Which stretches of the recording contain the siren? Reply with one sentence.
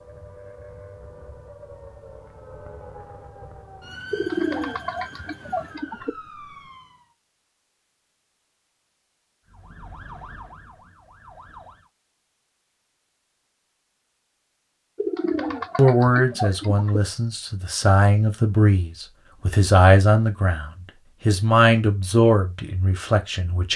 The siren can be heard from 0.0 to 7.2 s and from 9.4 to 11.9 s.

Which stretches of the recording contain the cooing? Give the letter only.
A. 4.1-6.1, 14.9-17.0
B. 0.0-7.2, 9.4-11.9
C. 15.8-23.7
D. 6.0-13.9
A.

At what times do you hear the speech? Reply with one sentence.
The speech can be heard from 15.8 to 23.7 s.